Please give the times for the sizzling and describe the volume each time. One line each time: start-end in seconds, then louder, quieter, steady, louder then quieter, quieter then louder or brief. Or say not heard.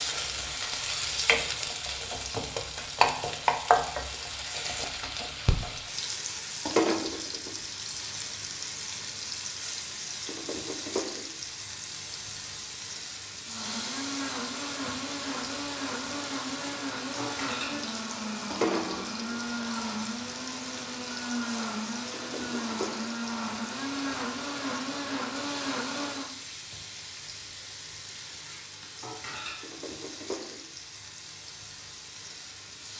0.0-32.9 quieter.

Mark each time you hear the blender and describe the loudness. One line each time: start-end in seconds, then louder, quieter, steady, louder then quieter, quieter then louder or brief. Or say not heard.
13.4-26.4 steady.